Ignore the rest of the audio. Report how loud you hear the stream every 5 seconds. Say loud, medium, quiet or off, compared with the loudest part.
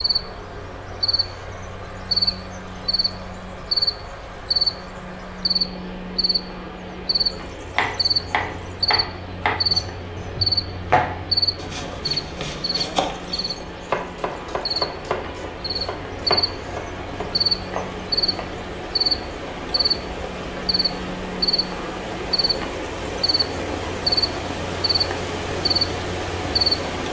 medium, medium, medium, medium, loud, loud.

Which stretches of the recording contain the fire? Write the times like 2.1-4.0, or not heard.
not heard.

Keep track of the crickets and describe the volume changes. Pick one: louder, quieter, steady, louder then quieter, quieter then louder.
steady.